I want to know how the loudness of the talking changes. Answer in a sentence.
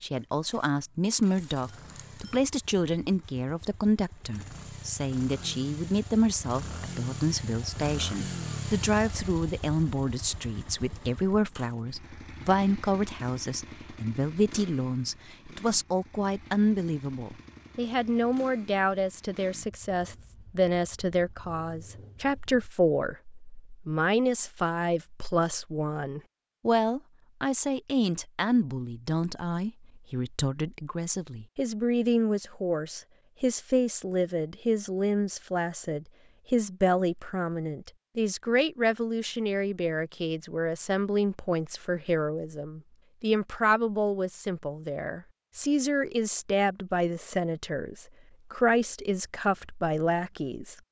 The volume of the talking stays about the same.